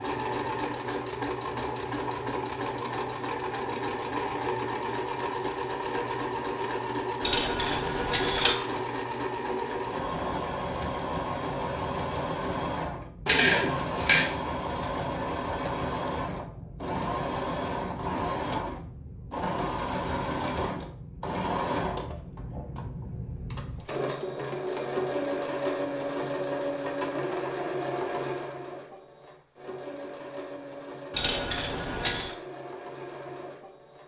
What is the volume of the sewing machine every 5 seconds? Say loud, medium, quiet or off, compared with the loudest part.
loud, loud, loud, loud, loud, loud, medium.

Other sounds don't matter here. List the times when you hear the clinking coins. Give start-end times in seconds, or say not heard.
7.2-8.6, 13.2-14.3, 31.1-32.2.